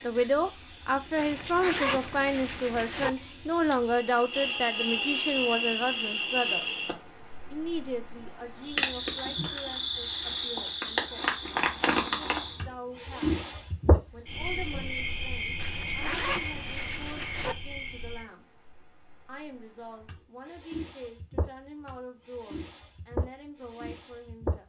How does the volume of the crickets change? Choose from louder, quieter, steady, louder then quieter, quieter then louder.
quieter.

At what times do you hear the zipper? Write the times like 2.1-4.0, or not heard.
1.1-3.1, 15.6-17.6.